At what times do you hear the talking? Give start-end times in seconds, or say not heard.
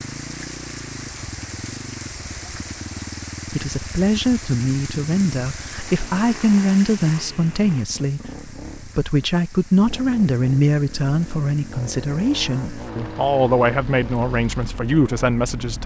3.5-15.8.